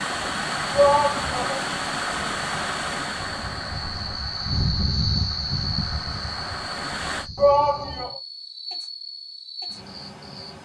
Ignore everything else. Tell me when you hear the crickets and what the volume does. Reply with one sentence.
The crickets can be heard from 0.0 to 10.6 s, getting louder then quieter.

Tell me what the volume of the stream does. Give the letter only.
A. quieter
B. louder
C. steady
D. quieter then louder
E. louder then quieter
D.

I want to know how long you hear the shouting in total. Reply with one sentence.
You can hear the shouting for 2 seconds altogether.